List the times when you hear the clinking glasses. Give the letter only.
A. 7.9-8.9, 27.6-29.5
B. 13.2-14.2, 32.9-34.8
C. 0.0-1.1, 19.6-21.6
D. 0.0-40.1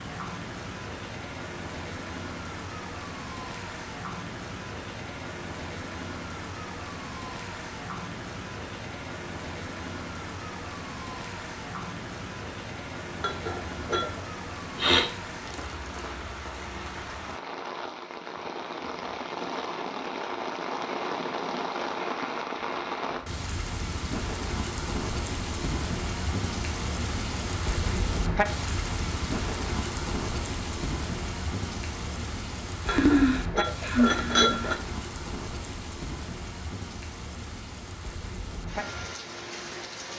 B.